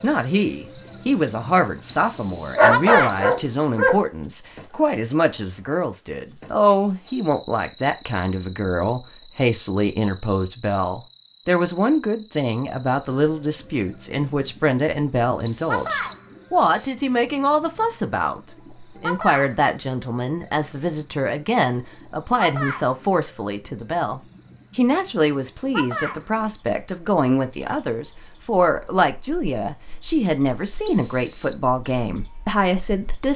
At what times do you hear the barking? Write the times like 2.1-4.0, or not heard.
2.5-4.0.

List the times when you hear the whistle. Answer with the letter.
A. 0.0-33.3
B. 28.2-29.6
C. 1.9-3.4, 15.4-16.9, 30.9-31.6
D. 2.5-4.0
C.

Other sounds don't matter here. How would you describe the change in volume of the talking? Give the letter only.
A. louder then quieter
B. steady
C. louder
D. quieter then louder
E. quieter
B.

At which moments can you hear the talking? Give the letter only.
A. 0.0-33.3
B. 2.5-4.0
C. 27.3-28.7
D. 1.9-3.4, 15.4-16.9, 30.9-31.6
A.